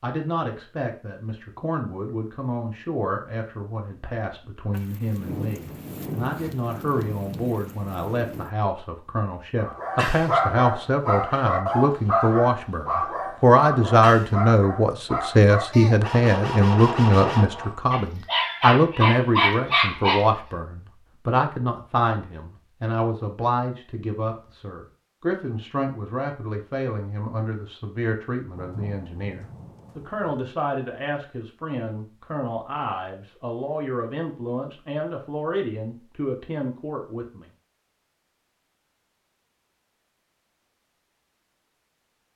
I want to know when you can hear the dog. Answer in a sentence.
You can hear the dog from 9.6 to 20.2 s.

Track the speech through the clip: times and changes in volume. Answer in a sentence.
The speech can be heard from 0.0 to 37.5 s, getting louder then quieter.